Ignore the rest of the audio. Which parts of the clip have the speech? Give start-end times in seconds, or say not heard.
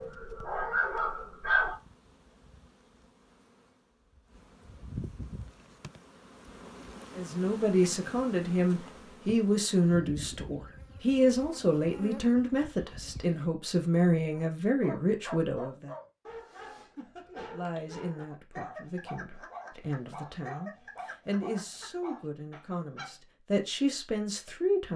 7.2-15.9, 17.3-24.9.